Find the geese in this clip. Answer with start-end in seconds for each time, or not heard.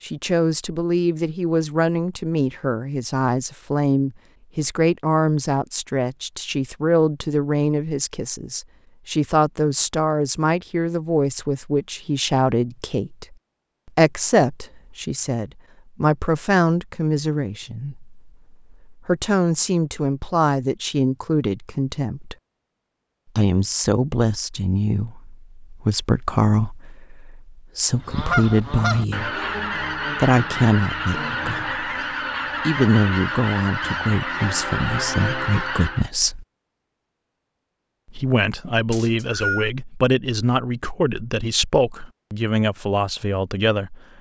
28.0-36.1.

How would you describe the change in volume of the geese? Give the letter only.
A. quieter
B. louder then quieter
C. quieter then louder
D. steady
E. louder
D.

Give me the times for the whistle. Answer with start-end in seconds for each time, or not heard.
38.9-39.7.